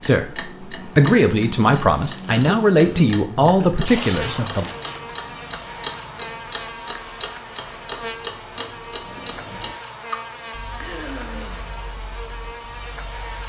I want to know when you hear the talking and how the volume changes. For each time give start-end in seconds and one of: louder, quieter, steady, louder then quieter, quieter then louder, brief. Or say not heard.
0.0-4.7 steady.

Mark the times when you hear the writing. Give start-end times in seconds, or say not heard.
not heard.